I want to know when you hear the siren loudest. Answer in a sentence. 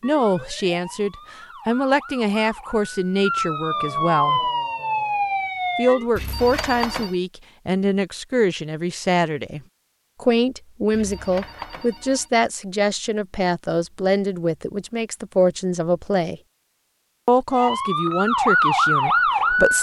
The loudest moment of the siren is at 19 seconds.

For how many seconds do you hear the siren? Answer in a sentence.
The siren can be heard for 8 seconds in total.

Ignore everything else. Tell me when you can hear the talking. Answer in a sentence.
You can hear the talking from 0.0 to 4.4 s, from 5.8 to 9.6 s, from 10.2 to 16.4 s and from 17.2 to 19.7 s.